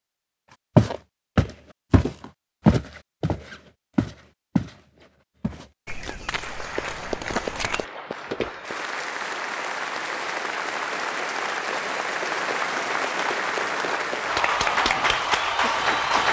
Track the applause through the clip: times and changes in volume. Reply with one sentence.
You can hear the applause from 6.3 to 16.2 s, getting louder.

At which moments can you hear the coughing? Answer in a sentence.
The coughing can't be heard in this clip.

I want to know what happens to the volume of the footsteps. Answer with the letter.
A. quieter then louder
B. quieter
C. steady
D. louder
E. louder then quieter
A.